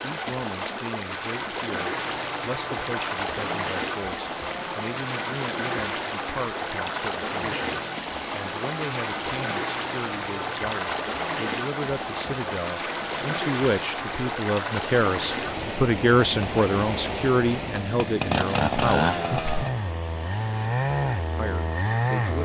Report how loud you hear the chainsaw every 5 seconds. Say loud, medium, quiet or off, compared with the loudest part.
medium, medium, medium, loud, loud.